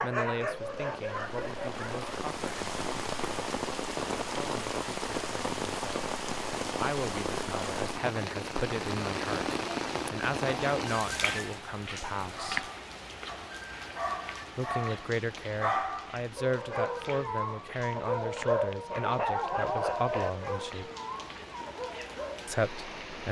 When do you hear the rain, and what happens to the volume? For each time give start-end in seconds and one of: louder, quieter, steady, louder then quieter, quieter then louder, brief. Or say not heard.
0.1-23.2 quieter.